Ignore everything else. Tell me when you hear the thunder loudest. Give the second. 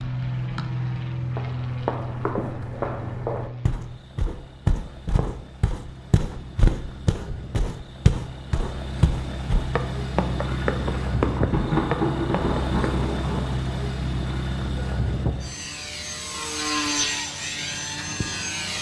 12 s.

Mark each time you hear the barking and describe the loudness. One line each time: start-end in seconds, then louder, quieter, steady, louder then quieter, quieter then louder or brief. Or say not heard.
not heard.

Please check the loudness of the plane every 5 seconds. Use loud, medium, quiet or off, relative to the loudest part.
loud, medium, loud, loud.